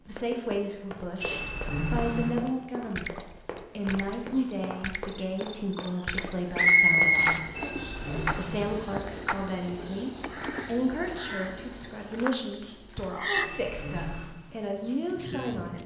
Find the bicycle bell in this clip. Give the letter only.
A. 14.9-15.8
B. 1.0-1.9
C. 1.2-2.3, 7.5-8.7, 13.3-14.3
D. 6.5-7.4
C.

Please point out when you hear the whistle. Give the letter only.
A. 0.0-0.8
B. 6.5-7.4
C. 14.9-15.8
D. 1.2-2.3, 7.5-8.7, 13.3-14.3
B.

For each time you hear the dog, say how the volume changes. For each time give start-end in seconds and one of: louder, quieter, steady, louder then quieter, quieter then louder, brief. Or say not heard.
not heard.